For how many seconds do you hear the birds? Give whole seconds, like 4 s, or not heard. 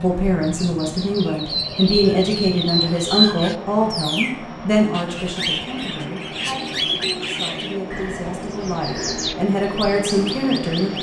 11 s.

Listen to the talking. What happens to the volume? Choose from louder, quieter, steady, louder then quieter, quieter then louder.
quieter then louder.